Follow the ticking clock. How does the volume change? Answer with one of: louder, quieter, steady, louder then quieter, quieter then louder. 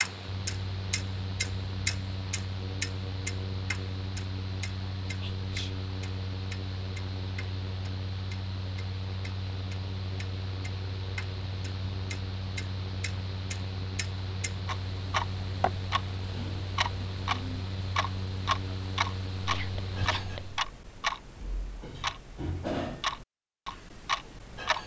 quieter then louder.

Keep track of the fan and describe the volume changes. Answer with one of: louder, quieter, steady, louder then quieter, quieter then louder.
steady.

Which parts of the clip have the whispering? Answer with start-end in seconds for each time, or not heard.
5.2-5.8, 19.4-20.6.